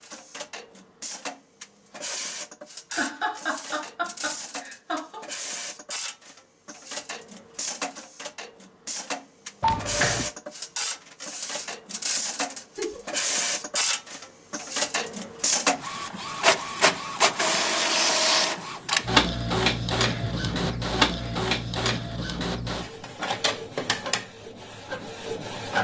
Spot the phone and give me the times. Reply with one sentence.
You can hear the phone from 9.6 to 10.3 s.